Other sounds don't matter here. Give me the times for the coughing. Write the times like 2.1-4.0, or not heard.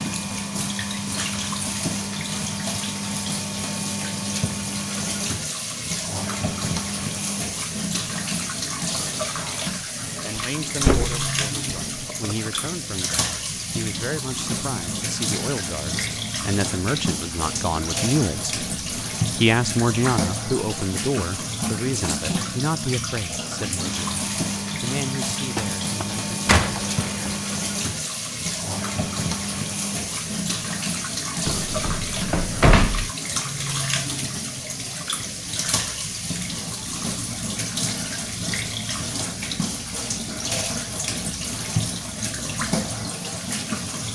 not heard.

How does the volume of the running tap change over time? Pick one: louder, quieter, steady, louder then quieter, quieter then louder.
steady.